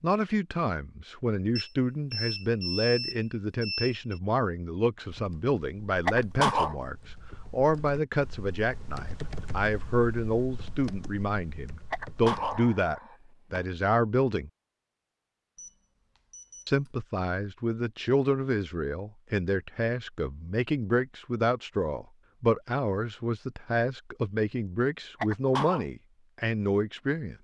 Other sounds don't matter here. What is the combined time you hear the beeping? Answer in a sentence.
The beeping can be heard for 4 seconds in total.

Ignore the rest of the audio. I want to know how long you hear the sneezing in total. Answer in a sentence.
The sneezing can be heard for 3 seconds in total.